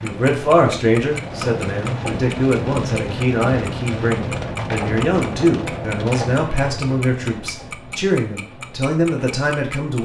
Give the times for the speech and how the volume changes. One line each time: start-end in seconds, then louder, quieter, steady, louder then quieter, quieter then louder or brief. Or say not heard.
0.0-9.9 steady.